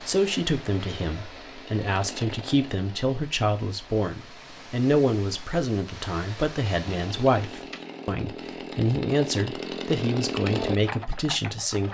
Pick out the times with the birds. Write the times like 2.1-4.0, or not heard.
not heard.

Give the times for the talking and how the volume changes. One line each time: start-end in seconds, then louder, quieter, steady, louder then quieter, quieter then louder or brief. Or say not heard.
0.1-11.8 steady.